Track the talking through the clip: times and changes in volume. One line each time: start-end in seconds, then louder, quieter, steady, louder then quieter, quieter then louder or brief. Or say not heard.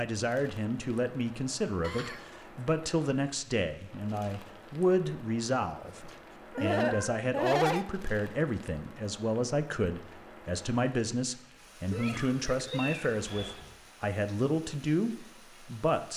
0.0-16.1 steady.